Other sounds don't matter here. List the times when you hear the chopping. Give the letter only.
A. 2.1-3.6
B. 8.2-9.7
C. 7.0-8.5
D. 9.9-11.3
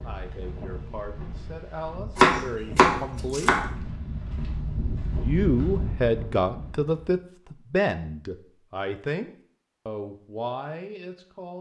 A.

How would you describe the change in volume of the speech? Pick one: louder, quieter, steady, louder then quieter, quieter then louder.
louder then quieter.